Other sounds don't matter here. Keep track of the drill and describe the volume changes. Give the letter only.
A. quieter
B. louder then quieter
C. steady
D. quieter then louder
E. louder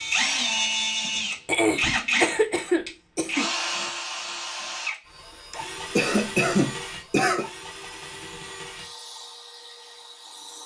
A.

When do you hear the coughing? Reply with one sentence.
The coughing can be heard from 1.4 to 3.5 s and from 5.5 to 7.5 s.